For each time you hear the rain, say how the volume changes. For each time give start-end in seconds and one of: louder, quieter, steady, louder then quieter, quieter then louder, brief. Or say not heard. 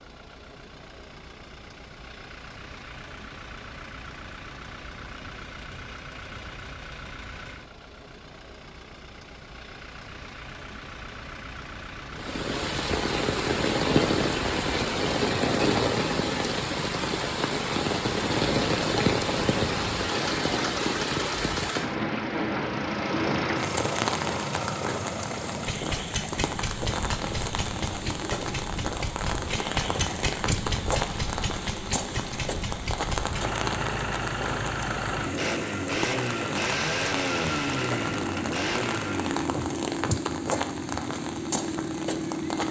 12.2-42.6 quieter.